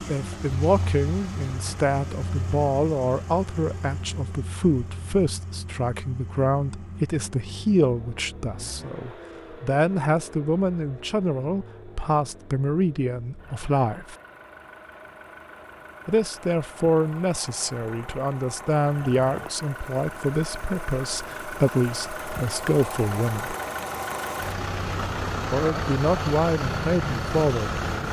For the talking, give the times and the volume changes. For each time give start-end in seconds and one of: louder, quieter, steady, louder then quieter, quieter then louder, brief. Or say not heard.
0.0-14.2 steady
16.1-23.6 steady
25.5-27.8 brief.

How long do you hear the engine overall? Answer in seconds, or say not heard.
28 s.